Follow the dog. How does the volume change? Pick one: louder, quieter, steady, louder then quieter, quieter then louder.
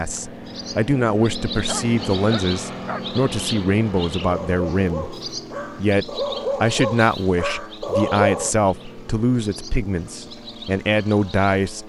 louder.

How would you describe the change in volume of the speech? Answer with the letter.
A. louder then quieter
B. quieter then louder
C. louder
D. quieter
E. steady
E.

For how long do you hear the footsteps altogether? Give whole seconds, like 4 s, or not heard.
not heard.